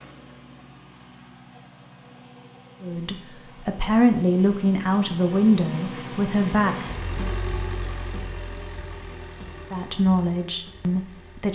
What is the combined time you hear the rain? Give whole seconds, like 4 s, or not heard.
not heard.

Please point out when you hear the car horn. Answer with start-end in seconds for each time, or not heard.
not heard.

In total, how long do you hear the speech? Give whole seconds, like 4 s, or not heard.
6 s.